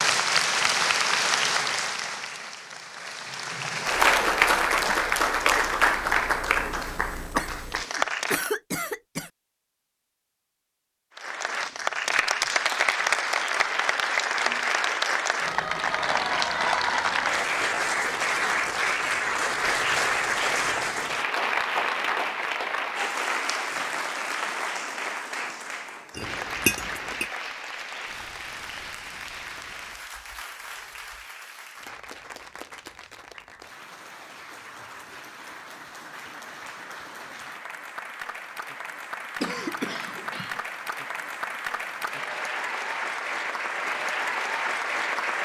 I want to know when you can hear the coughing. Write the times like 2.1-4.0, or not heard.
7.3-9.3, 39.4-40.6.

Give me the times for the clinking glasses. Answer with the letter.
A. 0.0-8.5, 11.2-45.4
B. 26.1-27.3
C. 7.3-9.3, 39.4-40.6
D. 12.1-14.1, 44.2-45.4
B.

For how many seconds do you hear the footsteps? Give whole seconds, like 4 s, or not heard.
not heard.